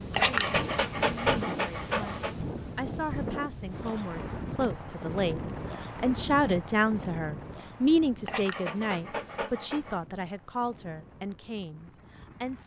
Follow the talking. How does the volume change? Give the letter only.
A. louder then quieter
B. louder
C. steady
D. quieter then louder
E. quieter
A.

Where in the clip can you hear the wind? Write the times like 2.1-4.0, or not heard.
0.0-12.6.